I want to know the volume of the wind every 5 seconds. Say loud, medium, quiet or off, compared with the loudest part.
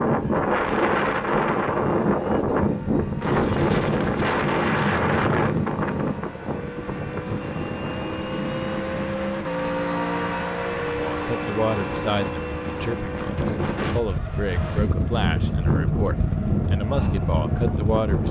loud, medium, medium, loud.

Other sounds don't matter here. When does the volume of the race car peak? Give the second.
10 s.